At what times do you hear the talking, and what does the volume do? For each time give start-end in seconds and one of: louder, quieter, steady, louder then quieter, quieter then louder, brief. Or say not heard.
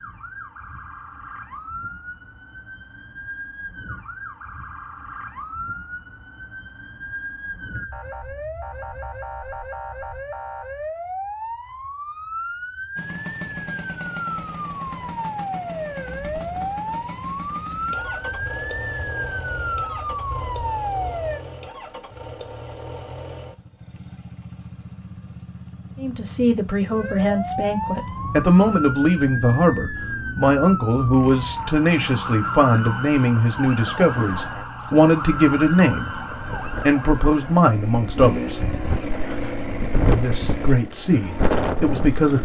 26.0-38.8 steady
40.0-42.4 brief.